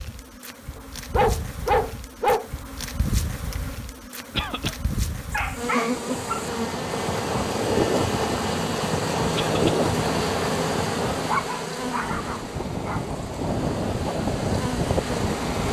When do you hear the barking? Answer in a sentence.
You can hear the barking from 0.8 to 2.5 s, from 5.3 to 6.5 s and from 11.2 to 13.0 s.